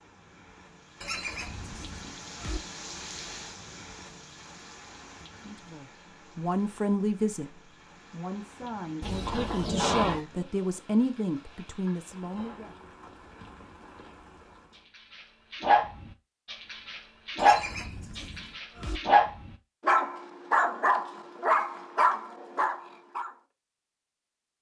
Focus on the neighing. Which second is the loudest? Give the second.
10 s.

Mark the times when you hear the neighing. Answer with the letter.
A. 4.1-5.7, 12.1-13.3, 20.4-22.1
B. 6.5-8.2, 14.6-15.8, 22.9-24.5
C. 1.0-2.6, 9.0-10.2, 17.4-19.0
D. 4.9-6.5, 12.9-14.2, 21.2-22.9
C.